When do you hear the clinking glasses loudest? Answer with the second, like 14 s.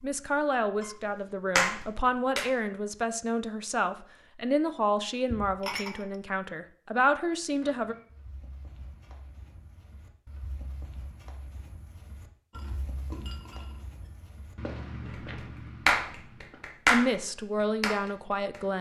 6 s.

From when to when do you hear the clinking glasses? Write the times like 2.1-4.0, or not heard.
5.3-6.2, 12.5-14.1.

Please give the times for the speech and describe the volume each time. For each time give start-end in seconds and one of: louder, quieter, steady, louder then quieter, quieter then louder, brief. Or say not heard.
0.0-8.0 steady
16.9-18.7 brief.